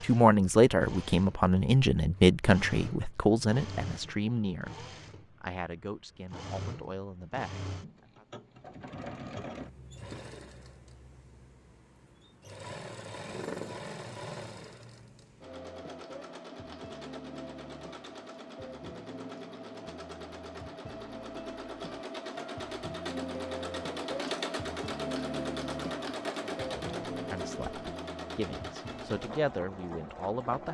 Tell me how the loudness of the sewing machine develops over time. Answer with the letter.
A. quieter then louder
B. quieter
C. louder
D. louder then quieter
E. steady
C.